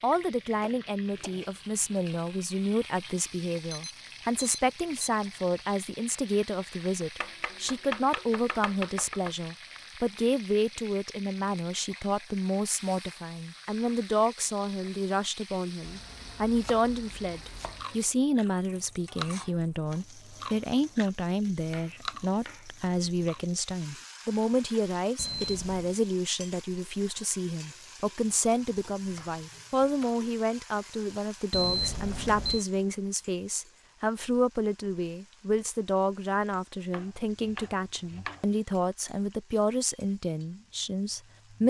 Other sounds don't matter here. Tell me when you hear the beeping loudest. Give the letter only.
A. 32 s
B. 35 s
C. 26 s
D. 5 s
A.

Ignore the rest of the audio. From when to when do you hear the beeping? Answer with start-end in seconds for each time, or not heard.
3.7-5.1, 25.1-26.0, 31.5-32.6.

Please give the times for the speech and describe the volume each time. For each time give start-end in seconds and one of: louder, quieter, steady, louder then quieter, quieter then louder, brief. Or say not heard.
0.0-41.6 steady.